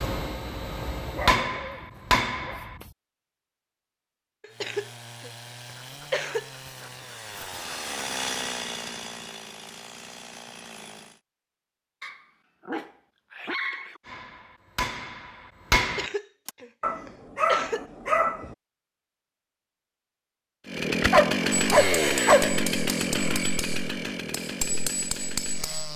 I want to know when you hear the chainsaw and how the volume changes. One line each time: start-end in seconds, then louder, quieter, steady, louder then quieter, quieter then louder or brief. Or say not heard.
4.5-11.2 louder then quieter
20.6-25.9 quieter.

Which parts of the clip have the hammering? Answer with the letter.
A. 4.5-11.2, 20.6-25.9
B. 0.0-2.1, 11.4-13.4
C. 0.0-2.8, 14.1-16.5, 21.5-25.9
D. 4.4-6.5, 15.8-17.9
C.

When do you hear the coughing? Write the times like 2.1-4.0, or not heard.
4.4-6.5, 15.8-17.9.